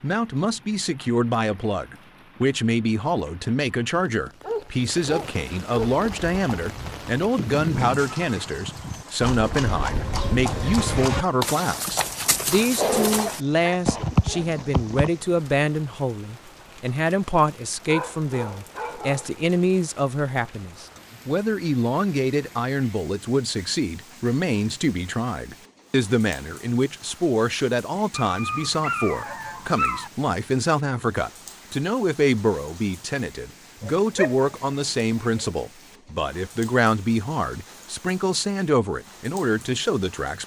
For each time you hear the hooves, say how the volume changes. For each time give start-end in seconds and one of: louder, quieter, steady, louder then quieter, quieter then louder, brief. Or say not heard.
5.8-15.1 louder.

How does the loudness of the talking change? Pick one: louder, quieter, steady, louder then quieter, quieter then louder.
steady.